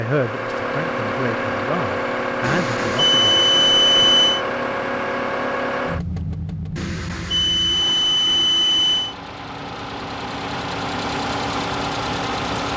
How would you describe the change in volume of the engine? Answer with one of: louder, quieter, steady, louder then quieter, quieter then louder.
quieter then louder.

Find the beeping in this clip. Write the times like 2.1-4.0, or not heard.
2.4-4.5, 6.8-9.2.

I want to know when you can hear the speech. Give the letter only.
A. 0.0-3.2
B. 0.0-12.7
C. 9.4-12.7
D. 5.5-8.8
A.